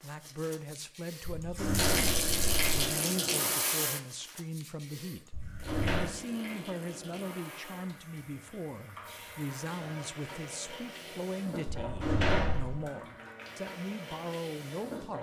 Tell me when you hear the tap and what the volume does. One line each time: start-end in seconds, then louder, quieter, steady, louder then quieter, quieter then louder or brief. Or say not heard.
0.0-15.1 quieter.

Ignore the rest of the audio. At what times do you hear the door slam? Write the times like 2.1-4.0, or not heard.
1.2-2.9, 5.3-6.2, 11.7-12.8.